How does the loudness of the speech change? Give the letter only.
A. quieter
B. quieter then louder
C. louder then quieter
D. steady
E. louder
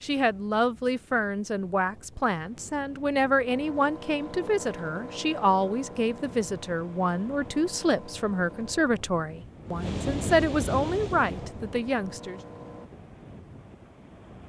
D.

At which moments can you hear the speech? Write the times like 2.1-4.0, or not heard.
0.0-12.4.